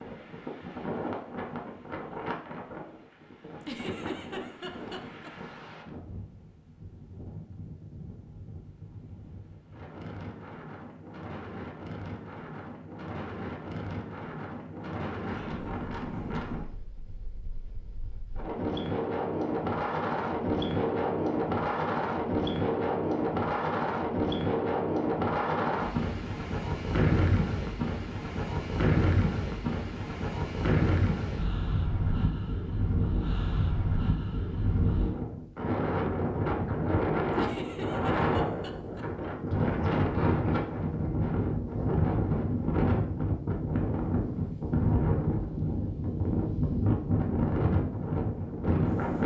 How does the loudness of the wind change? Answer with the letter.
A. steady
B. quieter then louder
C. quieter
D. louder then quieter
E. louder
E.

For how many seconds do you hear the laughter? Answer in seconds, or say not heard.
3 s.